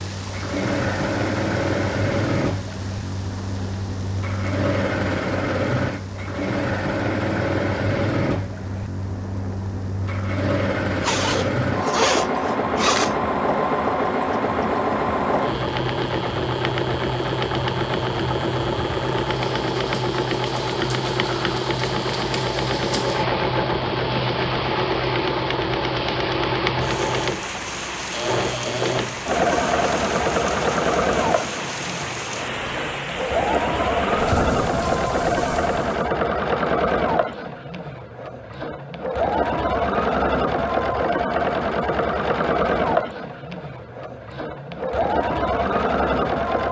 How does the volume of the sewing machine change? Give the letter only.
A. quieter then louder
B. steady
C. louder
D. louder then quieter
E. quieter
B.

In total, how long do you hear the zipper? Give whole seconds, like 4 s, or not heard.
2 s.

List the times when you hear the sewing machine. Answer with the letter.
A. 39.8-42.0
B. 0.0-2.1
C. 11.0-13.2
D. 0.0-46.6
D.